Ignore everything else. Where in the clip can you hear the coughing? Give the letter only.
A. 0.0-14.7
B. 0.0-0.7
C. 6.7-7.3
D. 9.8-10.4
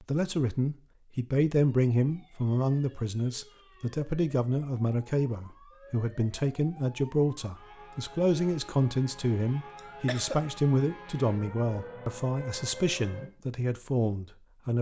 D.